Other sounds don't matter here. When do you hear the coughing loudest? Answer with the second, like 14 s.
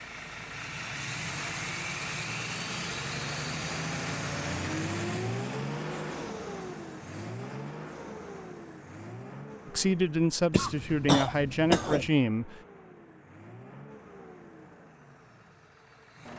12 s.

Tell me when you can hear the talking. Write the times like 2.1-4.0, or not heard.
9.7-12.6.